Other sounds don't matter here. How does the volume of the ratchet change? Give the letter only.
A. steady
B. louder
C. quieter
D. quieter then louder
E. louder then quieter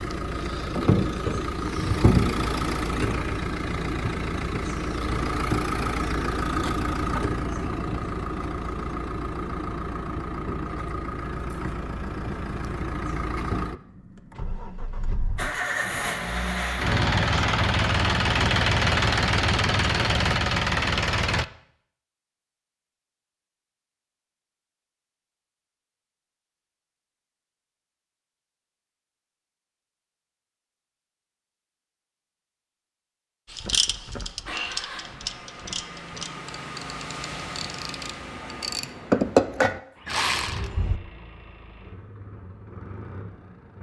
D.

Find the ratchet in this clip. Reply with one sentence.
The ratchet can be heard from 33.5 to 41.0 s.